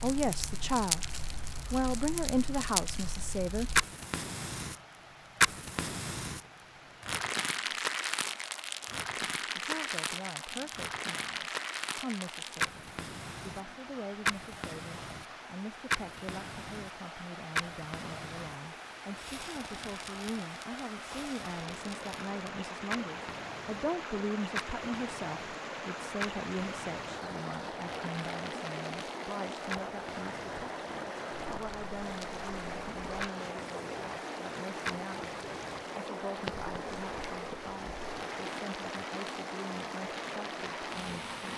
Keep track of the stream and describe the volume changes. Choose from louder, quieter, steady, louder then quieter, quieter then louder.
louder.